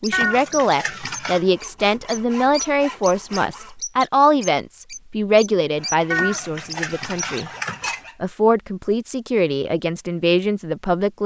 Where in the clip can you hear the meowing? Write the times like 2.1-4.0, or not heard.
0.1-1.5, 6.1-8.0.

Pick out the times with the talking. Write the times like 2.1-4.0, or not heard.
0.0-7.5, 8.2-11.2.